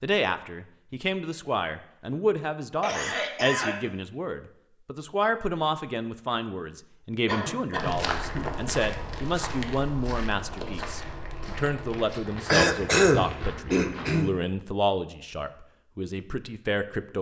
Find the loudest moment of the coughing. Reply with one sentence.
The loudest moment of the coughing is at 13 seconds.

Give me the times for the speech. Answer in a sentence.
The speech can be heard from 0.0 to 17.1 s.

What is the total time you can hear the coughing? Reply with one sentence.
The coughing can be heard for 4 seconds in total.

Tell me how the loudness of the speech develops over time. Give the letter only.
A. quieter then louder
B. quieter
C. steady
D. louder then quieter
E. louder
C.